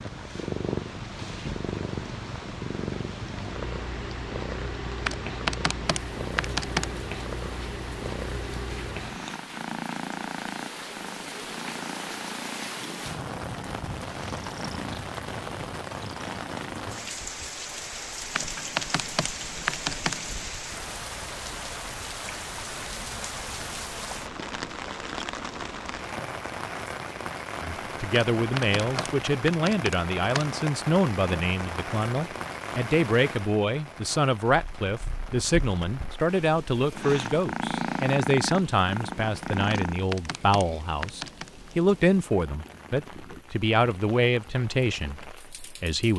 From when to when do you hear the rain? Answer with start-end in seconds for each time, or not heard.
0.0-46.1.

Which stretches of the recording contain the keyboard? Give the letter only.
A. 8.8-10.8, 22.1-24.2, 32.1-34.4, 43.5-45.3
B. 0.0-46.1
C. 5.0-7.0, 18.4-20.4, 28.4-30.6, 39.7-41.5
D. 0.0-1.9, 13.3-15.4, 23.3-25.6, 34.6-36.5
C.